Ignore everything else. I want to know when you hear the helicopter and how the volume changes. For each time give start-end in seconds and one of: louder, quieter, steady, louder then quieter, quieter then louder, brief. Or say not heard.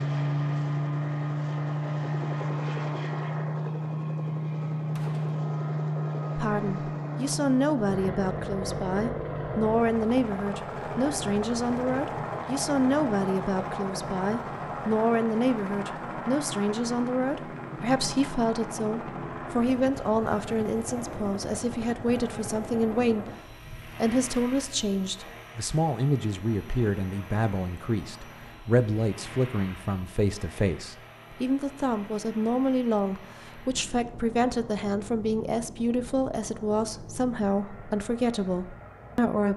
0.0-39.5 quieter.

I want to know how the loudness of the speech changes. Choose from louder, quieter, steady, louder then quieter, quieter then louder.
steady.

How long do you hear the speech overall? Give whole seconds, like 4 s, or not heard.
33 s.